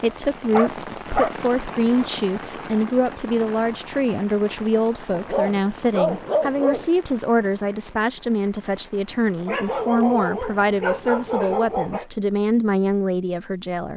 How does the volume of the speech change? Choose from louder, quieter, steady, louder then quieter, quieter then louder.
steady.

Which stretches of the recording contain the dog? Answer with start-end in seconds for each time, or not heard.
0.1-1.4, 5.1-6.9, 9.4-12.1.